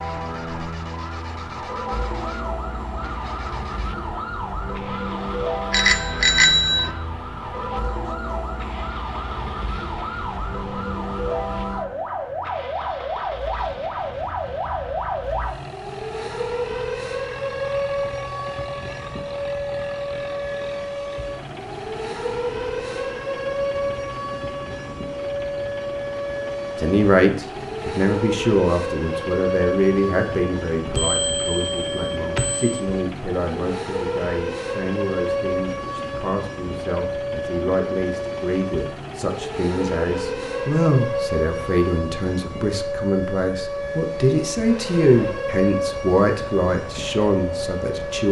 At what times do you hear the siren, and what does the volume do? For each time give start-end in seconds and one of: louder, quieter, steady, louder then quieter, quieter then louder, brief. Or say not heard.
0.0-48.2 steady.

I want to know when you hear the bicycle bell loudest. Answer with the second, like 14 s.
6 s.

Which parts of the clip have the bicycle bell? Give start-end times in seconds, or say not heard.
5.7-6.9, 30.9-32.8.